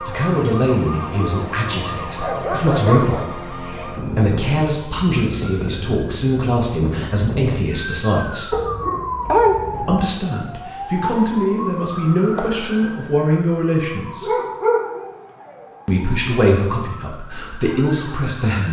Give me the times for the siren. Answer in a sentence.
The siren can be heard from 0.0 to 18.4 s.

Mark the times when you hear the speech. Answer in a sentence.
The speech can be heard from 0.0 to 8.6 s, from 9.8 to 14.3 s and from 15.8 to 18.6 s.